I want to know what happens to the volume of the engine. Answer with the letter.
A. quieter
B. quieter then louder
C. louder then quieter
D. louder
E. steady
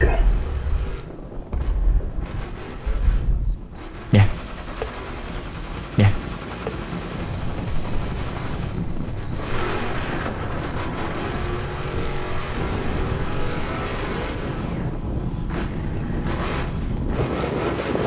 D.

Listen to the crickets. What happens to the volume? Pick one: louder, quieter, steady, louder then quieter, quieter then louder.
louder then quieter.